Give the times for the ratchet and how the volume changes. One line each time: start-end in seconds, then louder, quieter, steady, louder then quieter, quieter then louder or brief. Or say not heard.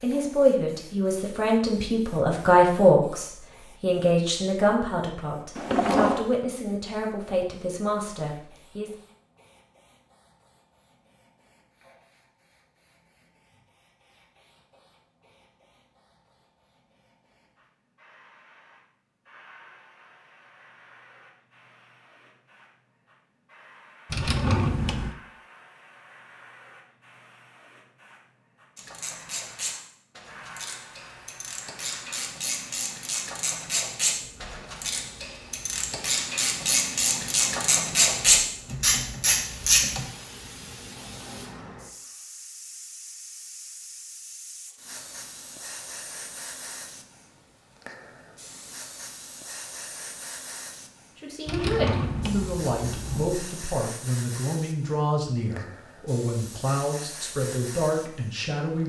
28.8-40.0 louder.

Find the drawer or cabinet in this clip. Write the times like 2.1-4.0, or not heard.
5.5-6.2, 24.1-25.1, 51.5-53.4.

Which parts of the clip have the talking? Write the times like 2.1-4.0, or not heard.
0.0-8.9, 51.1-58.8.